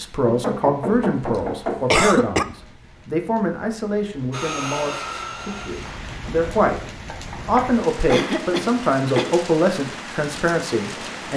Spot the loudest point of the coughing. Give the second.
2 s.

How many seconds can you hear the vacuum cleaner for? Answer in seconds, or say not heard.
2 s.